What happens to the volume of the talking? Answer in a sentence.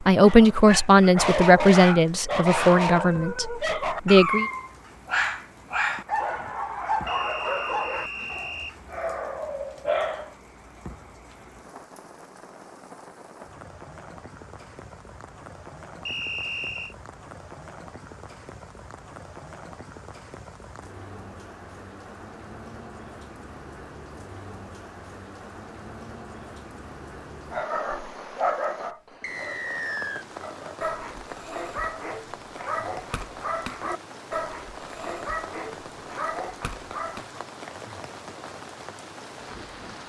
The loudness of the talking goes down.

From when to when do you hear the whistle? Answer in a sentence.
The whistle can be heard from 7.0 to 8.8 s, from 16.1 to 16.9 s and from 29.2 to 30.2 s.